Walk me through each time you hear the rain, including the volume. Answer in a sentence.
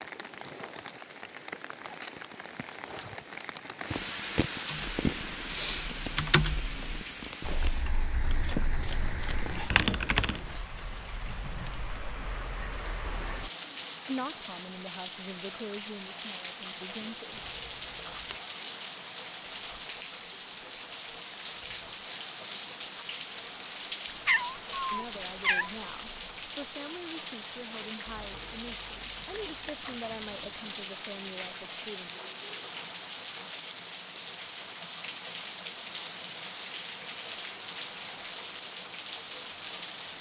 You can hear the rain from 0.0 to 40.1 s, at a steady volume.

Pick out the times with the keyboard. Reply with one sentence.
The keyboard can be heard from 4.7 to 10.6 s.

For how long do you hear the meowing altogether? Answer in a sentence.
You can hear the meowing for 2 seconds altogether.